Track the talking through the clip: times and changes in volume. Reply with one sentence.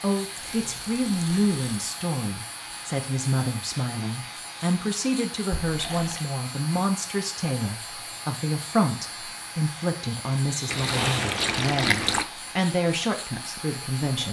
You can hear the talking from 0.0 to 14.2 s, at a steady volume.